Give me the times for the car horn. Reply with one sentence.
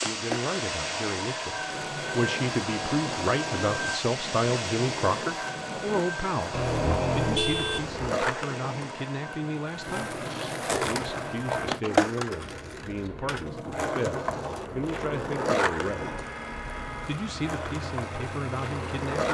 The car horn can be heard from 6.5 to 8.0 s and from 15.8 to 17.1 s.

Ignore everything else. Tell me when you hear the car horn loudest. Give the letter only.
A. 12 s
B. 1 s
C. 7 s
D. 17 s
C.